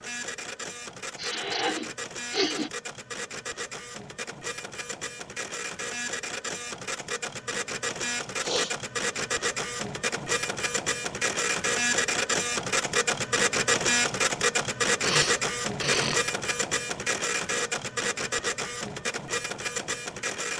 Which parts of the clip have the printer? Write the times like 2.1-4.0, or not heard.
0.0-20.5.